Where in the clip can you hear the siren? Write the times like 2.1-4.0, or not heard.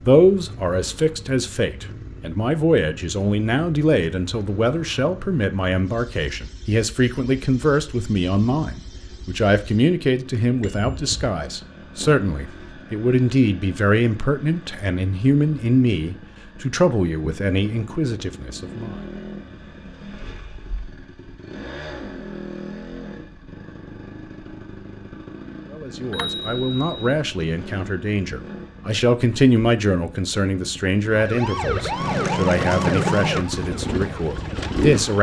31.1-35.1.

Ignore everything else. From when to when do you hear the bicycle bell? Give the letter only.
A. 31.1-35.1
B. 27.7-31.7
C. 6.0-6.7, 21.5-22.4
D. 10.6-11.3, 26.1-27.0
D.